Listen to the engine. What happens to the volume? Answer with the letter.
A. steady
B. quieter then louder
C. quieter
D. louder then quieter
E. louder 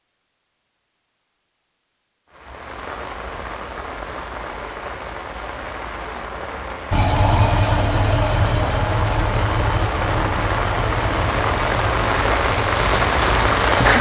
C.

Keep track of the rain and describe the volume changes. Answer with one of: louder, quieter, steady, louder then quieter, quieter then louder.
louder.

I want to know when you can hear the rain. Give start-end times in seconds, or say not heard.
2.3-13.9.